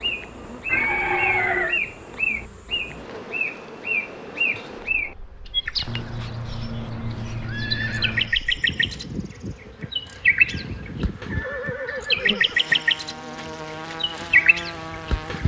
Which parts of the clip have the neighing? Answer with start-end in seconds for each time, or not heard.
0.7-1.8, 5.8-8.3, 11.2-12.7.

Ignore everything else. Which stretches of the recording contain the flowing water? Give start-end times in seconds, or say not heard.
not heard.